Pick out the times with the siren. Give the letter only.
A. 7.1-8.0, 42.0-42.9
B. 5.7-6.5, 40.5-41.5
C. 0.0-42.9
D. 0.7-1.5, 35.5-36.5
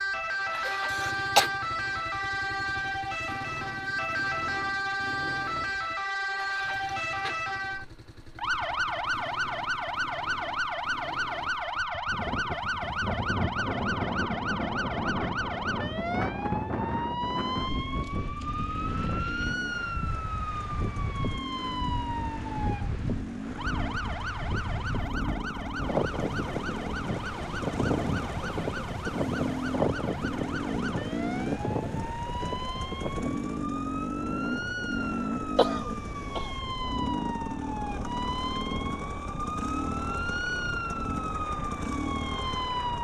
C.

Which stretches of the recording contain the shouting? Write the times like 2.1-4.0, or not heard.
not heard.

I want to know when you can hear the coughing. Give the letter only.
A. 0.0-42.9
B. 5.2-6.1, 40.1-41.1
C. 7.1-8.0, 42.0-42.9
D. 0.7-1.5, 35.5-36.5
D.